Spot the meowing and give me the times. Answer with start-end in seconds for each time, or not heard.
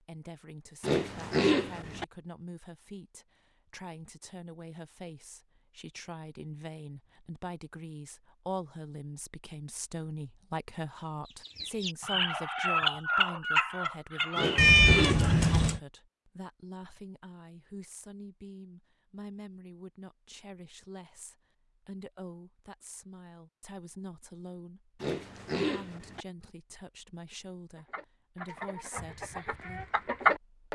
14.6-15.8.